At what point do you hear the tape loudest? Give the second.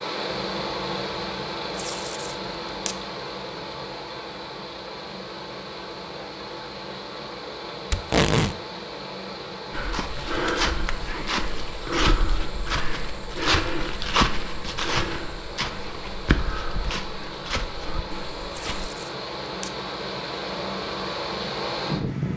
8 s.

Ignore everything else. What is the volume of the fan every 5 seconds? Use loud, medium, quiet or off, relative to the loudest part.
loud, medium, medium, medium, loud.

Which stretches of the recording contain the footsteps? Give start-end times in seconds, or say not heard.
9.7-18.9.